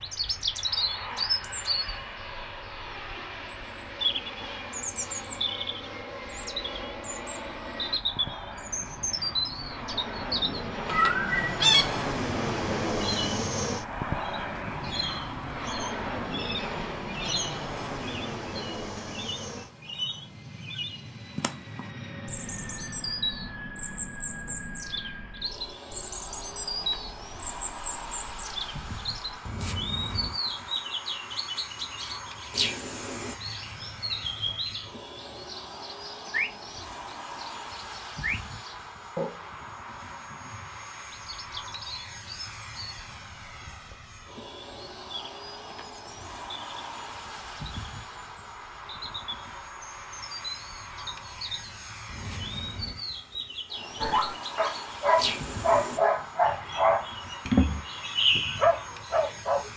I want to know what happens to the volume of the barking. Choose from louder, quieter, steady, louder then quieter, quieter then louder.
steady.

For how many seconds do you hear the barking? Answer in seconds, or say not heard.
6 s.